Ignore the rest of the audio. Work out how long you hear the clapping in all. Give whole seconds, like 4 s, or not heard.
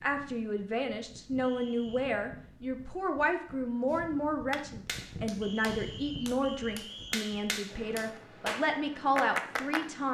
6 s.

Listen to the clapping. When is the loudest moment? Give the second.
9 s.